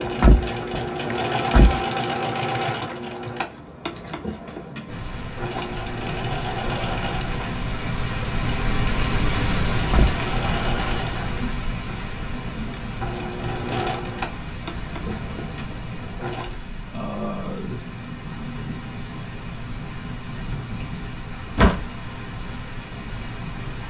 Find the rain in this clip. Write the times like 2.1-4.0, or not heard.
4.8-23.8.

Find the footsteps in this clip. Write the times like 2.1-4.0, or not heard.
not heard.